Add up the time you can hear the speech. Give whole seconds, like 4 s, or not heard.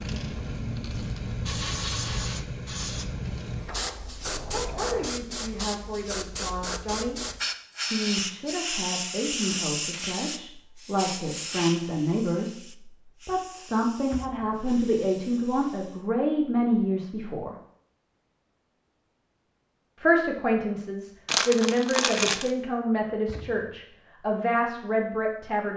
18 s.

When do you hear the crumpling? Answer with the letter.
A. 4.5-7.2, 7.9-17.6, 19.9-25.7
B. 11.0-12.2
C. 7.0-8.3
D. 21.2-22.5
D.